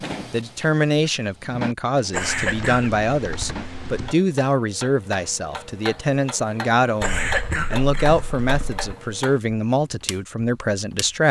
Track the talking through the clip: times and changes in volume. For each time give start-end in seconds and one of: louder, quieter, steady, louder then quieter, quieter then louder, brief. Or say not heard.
0.3-11.2 steady.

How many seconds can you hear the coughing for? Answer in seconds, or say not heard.
2 s.